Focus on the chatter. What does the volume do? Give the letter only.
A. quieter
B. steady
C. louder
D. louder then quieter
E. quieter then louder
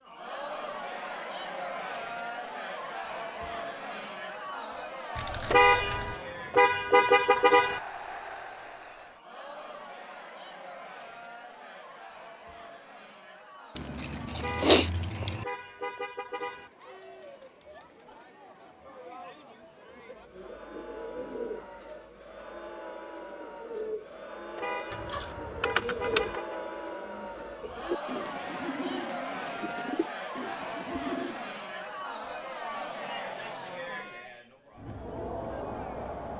E.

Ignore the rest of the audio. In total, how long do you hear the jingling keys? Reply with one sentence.
The jingling keys can be heard for 4 seconds in total.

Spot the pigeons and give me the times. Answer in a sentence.
You can hear the pigeons from 20.2 to 31.6 s.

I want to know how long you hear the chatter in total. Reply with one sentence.
The chatter can be heard for 36 seconds in total.